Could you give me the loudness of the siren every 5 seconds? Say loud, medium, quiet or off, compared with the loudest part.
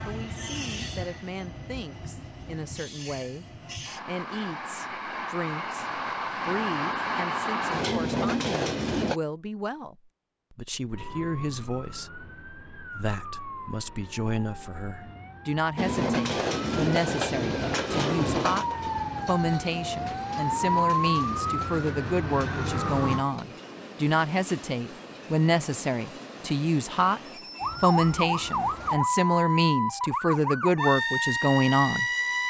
off, off, quiet, medium, loud, loud, loud.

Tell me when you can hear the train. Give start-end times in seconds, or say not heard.
0.0-9.2, 15.8-29.0.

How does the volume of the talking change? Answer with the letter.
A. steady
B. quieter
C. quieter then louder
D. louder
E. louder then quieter
D.